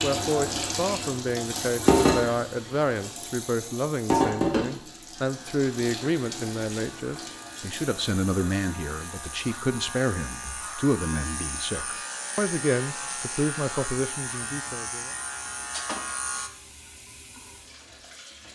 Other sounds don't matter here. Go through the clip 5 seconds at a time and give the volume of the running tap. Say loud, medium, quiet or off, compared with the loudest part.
loud, quiet, quiet, quiet.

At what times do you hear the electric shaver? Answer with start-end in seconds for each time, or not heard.
5.2-16.5.